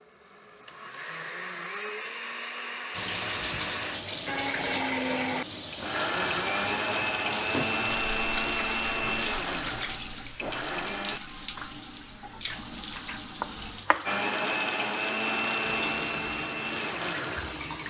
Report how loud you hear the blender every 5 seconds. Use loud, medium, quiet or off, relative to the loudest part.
medium, loud, loud, loud.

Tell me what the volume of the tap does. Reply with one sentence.
The volume of the tap goes down.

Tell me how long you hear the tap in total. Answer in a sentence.
You can hear the tap for 15 seconds altogether.